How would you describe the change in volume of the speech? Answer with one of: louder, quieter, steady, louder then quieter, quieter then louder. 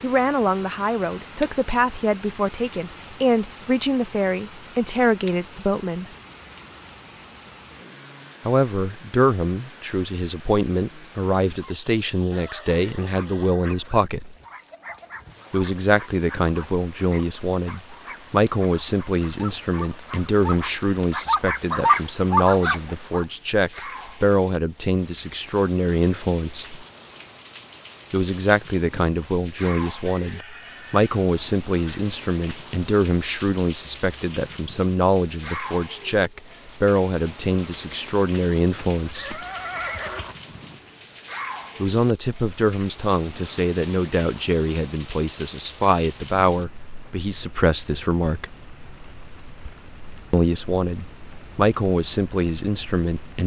steady.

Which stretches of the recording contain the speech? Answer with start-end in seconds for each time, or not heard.
0.0-6.1, 8.4-14.3, 15.5-26.8, 28.1-39.4, 41.8-48.5, 50.3-53.4.